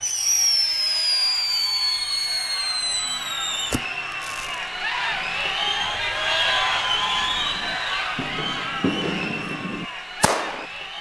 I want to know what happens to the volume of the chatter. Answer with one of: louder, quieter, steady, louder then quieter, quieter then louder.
louder then quieter.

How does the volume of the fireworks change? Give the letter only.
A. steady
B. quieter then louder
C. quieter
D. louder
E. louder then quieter
B.